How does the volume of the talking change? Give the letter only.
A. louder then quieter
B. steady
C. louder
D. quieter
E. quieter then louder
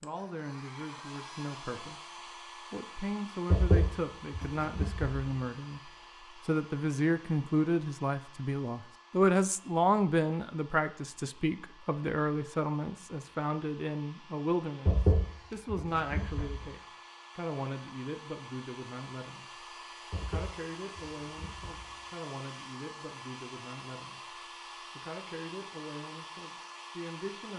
A.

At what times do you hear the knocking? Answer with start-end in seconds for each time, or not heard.
3.5-5.2, 14.8-16.7, 20.1-22.1.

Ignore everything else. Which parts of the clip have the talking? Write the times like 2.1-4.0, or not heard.
0.0-27.5.